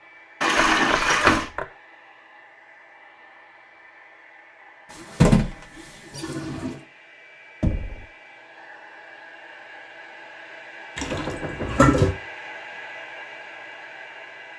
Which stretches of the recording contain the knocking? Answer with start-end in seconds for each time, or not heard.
0.6-1.6, 7.6-8.1, 11.1-11.9.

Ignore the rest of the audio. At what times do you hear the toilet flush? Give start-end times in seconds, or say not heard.
0.4-1.5, 5.0-6.8, 10.9-12.2.